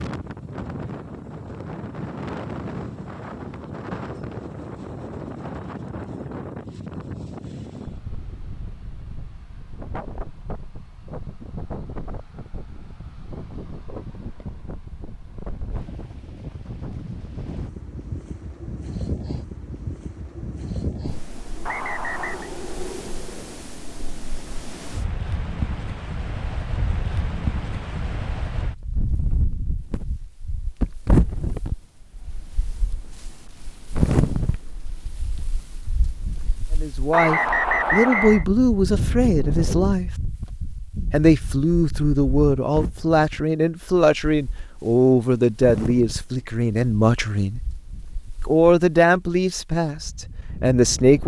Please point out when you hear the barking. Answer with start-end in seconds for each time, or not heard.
not heard.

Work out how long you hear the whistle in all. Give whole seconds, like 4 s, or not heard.
2 s.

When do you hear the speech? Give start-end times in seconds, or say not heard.
36.8-40.1, 41.1-47.6, 48.5-51.2.